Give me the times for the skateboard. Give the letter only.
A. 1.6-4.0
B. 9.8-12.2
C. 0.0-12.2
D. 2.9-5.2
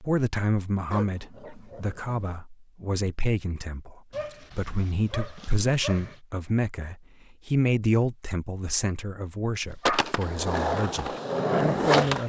B.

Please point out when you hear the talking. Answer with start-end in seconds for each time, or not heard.
0.0-12.2.